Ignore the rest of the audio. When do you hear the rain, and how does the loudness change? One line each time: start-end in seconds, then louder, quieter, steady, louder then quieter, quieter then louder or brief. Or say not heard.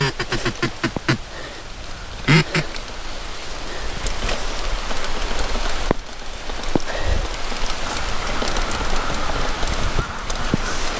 0.0-10.9 louder.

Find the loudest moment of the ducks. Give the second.
2 s.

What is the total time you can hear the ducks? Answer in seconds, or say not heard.
6 s.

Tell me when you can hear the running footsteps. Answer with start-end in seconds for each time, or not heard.
not heard.